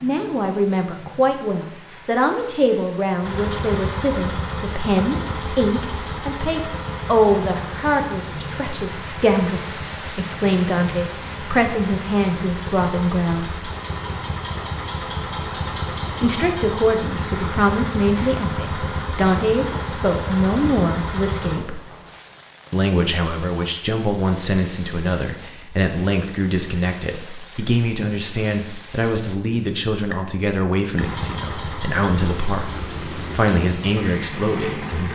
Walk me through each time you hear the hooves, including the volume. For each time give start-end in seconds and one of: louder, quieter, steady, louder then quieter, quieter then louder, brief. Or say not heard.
not heard.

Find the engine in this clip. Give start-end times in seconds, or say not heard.
3.2-21.6, 30.9-35.1.